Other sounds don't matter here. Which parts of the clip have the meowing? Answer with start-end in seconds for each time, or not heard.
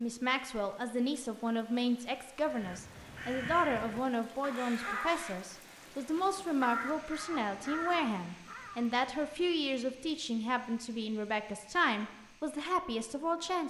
not heard.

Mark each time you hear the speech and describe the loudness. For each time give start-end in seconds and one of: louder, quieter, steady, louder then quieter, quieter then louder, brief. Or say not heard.
0.0-13.6 steady.